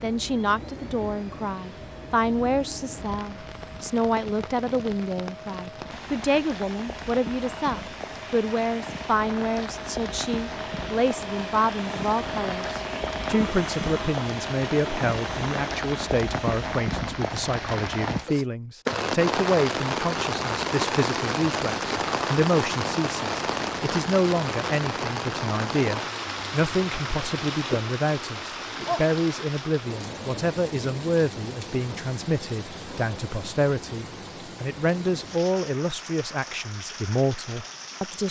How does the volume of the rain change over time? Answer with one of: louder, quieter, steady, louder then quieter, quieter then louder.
louder then quieter.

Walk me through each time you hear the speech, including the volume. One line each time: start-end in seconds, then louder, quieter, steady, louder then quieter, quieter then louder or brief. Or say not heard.
0.0-38.2 steady.